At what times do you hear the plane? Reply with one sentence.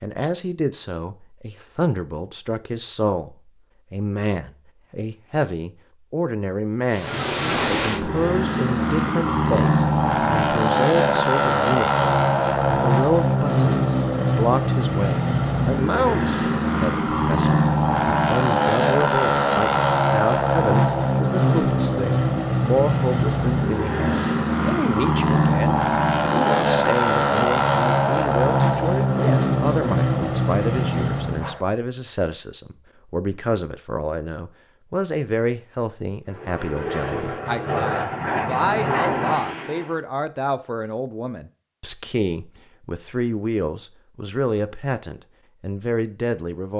The plane can be heard from 6.8 to 31.6 s and from 36.2 to 40.0 s.